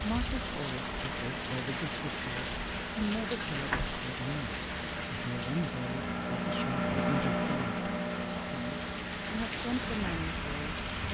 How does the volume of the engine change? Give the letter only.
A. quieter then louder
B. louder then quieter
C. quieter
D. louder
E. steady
B.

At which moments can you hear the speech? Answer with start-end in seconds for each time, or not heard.
0.0-10.8.